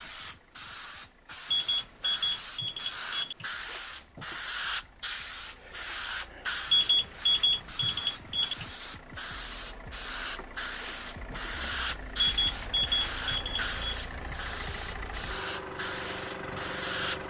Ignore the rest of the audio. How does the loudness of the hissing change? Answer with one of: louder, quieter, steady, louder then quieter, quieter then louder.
steady.